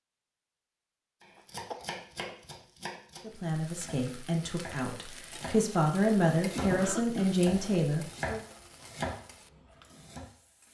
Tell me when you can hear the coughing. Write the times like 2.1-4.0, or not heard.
1.4-1.9, 6.5-7.3.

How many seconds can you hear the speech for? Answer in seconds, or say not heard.
5 s.